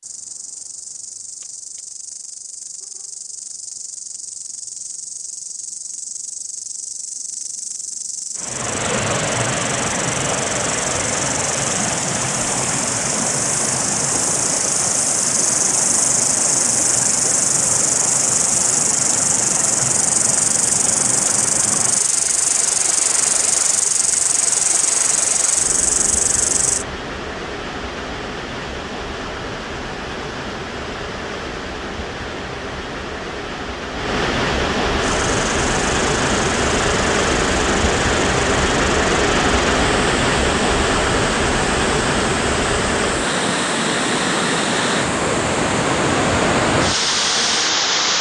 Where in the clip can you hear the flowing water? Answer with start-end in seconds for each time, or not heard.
8.3-48.1.